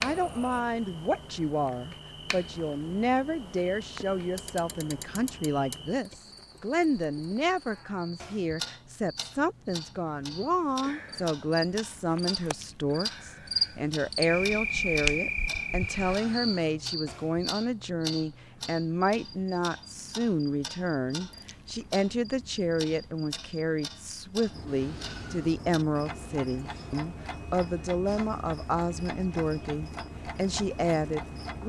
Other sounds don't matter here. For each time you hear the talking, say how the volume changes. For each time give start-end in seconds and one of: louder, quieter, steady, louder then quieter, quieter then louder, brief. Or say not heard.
0.0-31.6 steady.